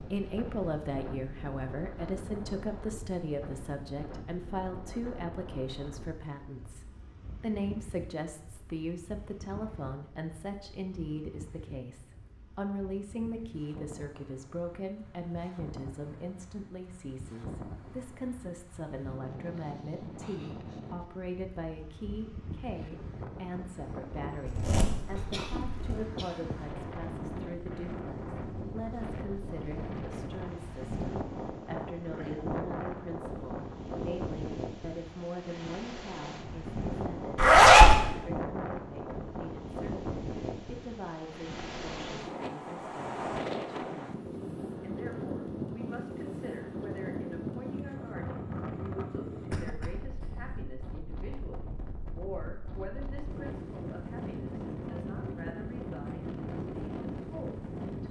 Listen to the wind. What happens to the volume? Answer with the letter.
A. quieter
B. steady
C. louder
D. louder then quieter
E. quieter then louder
C.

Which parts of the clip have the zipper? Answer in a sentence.
The zipper can be heard from 24.4 to 26.1 s and from 37.4 to 38.0 s.